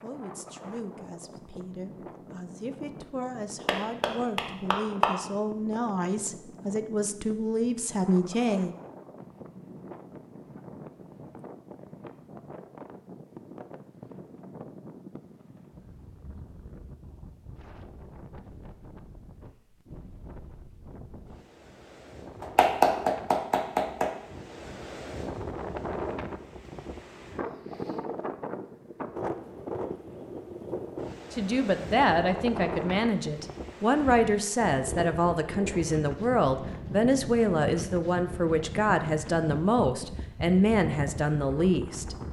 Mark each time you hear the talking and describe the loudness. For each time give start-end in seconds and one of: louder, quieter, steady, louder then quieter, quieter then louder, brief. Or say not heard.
0.0-8.8 louder
31.3-42.1 steady.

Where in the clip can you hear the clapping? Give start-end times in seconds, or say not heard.
3.6-5.2, 22.4-24.1.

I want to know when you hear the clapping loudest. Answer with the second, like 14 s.
23 s.